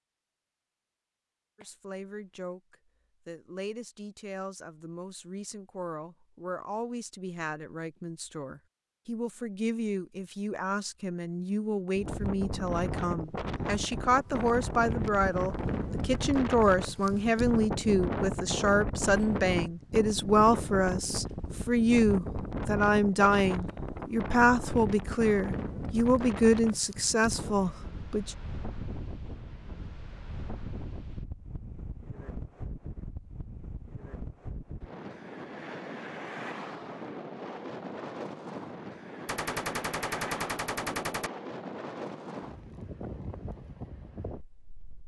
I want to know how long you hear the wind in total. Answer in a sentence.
The wind can be heard for 33 seconds in total.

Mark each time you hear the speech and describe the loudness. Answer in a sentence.
You can hear the speech from 1.6 to 28.4 s, getting louder.